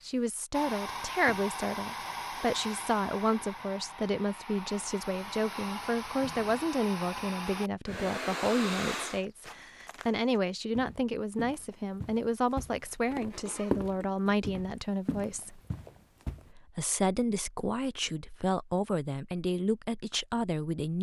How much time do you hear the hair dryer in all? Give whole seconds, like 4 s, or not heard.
9 s.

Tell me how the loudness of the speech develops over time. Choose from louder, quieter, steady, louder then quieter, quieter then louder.
steady.